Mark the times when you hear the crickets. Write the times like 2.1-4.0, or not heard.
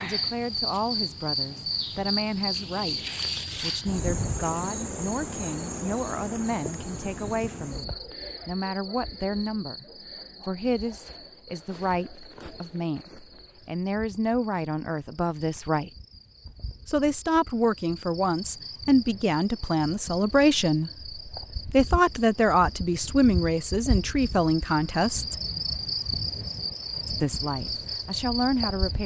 0.0-29.0.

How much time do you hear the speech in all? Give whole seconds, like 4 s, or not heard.
26 s.